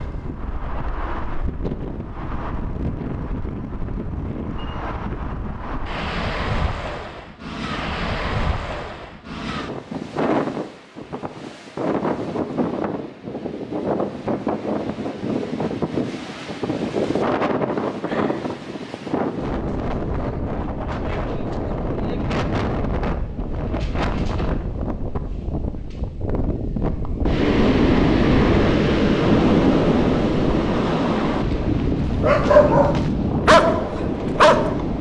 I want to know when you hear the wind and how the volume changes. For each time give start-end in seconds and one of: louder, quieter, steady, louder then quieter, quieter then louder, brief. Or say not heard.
0.0-34.9 louder.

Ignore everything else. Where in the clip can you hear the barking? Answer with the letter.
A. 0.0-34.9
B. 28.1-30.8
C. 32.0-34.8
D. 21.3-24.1
C.